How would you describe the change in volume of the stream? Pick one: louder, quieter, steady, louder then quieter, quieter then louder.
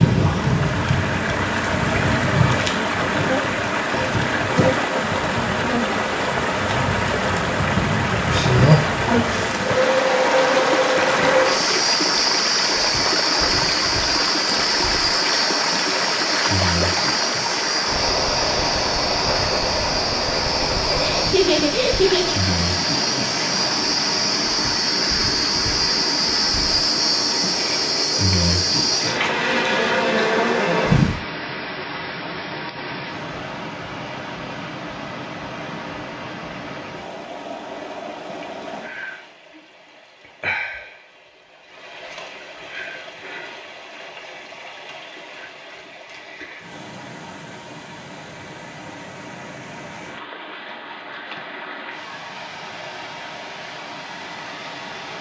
quieter.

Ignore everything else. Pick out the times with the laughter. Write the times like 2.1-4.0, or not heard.
20.9-22.4.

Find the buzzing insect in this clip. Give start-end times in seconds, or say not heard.
0.0-31.2.